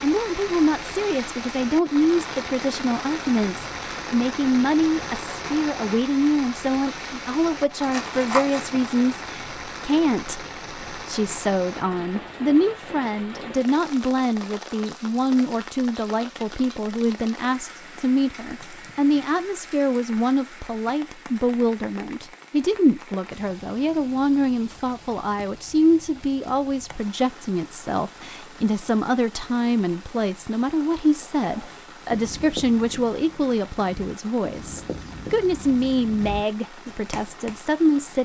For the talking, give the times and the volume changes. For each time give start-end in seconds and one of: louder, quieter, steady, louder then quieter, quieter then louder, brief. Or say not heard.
0.0-38.2 steady.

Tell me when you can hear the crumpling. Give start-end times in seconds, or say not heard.
7.5-8.9.